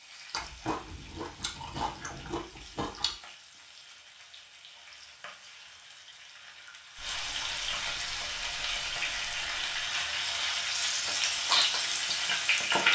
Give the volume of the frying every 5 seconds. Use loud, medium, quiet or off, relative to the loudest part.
quiet, medium, loud.